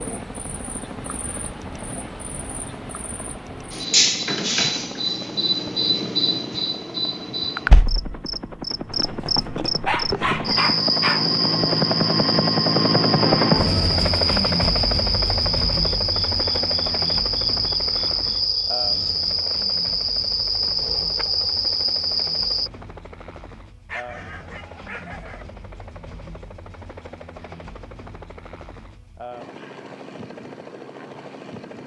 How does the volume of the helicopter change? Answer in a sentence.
The volume of the helicopter goes up, then down.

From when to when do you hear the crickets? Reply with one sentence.
You can hear the crickets from 0.0 to 22.7 s.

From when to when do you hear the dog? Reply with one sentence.
You can hear the dog from 9.4 to 11.3 s and from 23.9 to 25.5 s.